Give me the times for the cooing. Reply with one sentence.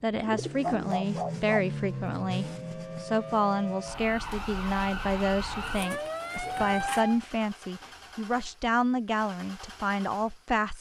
You can hear the cooing from 0.2 to 1.6 s and from 5.6 to 7.0 s.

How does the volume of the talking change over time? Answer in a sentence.
The loudness of the talking stays about the same.